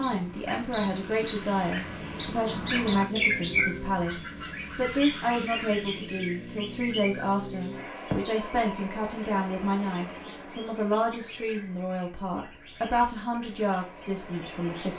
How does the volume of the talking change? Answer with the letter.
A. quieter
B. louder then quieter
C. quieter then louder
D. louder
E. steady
E.